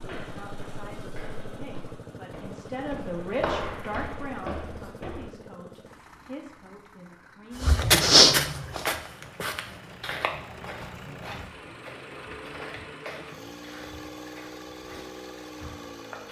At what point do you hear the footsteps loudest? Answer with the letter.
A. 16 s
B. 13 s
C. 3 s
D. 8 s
D.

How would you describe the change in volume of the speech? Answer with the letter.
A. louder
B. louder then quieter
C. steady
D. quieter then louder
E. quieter
B.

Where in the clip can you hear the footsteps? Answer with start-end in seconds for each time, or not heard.
0.0-5.3, 7.5-16.2.